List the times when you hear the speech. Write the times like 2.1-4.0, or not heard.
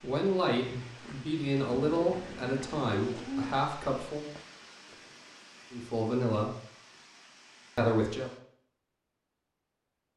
0.0-4.3, 5.7-6.5, 7.8-8.3.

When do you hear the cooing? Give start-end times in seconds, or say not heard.
1.8-3.6.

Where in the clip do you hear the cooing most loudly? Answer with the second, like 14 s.
3 s.